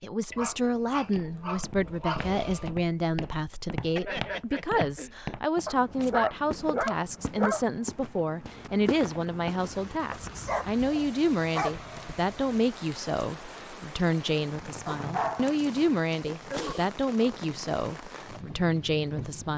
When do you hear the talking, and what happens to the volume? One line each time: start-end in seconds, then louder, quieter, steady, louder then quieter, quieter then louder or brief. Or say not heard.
0.0-19.5 steady.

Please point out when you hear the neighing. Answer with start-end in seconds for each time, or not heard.
4.0-5.2.